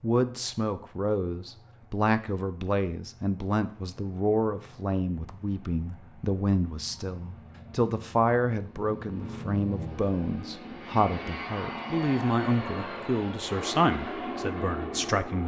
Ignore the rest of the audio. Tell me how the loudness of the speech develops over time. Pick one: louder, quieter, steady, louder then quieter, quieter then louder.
steady.